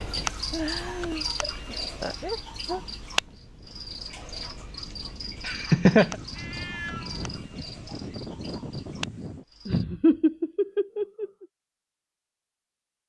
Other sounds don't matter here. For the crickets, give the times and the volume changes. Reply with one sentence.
You can hear the crickets from 0.0 to 9.8 s, getting quieter.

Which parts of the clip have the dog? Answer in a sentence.
You can't hear the dog here.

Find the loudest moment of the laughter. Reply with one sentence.
The loudest moment of the laughter is at 6 seconds.